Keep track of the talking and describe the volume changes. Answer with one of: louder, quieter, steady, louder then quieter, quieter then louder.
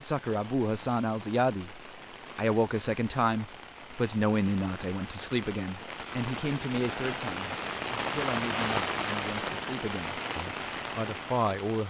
quieter.